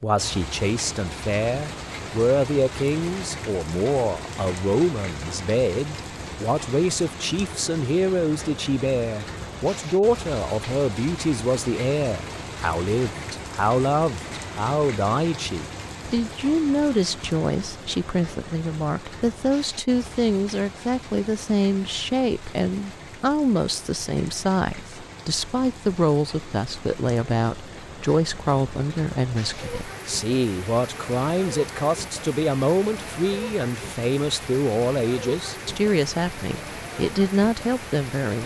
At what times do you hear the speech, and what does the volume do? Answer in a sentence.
The speech can be heard from 0.0 to 38.4 s, at a steady volume.